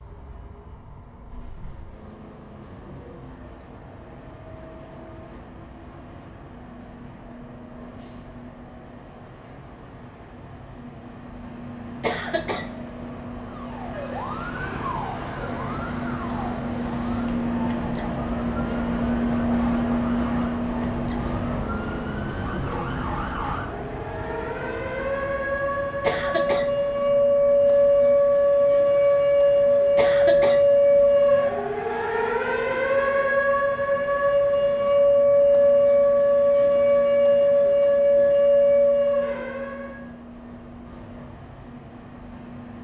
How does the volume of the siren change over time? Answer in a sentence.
The loudness of the siren goes up.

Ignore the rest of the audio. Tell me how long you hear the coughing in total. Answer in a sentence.
The coughing can be heard for 2 seconds in total.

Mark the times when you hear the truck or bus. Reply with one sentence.
You can hear the truck or bus from 0.0 to 42.7 s.